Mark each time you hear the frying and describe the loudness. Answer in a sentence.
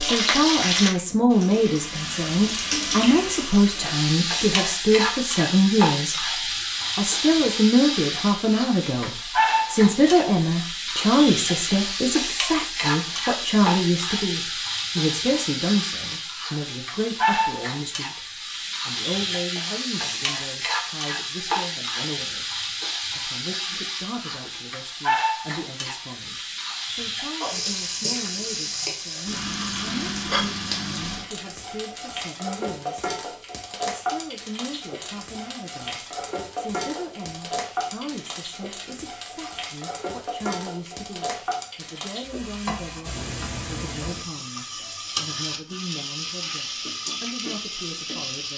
The frying can be heard from 0.0 to 48.5 s, getting quieter.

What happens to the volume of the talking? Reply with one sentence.
The volume of the talking goes down.